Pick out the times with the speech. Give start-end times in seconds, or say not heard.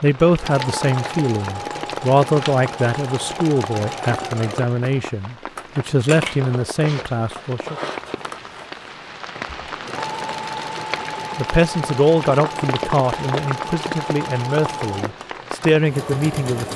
0.0-7.8, 11.3-16.7.